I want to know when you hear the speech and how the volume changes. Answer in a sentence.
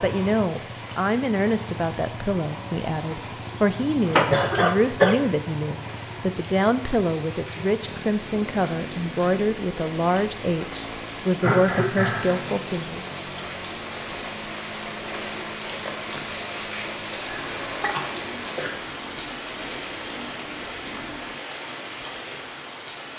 You can hear the speech from 0.0 to 13.0 s, at a steady volume.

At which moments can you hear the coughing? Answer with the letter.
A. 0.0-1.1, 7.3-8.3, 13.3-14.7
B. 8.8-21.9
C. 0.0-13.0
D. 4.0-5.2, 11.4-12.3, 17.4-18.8
D.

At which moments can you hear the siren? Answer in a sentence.
You can't hear the siren here.